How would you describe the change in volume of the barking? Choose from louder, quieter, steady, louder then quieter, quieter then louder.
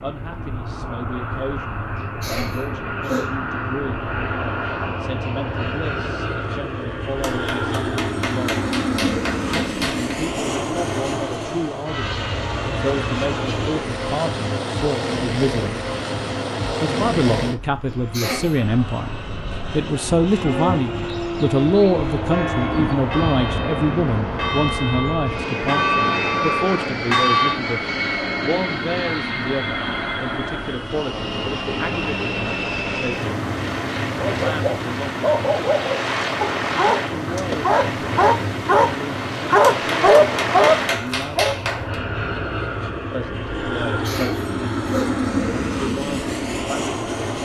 louder.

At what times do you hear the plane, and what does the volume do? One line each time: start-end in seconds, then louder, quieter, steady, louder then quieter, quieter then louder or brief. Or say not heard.
0.0-47.4 steady.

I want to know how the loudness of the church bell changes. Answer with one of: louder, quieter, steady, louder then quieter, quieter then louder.
louder.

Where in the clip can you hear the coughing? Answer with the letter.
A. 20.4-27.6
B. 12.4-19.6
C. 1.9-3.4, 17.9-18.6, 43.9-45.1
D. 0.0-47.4
C.